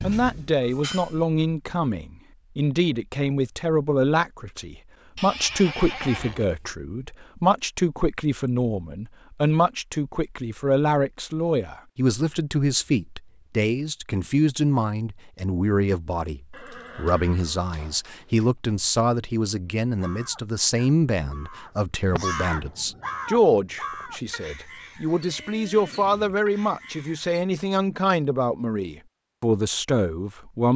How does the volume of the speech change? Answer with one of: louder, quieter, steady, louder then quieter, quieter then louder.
steady.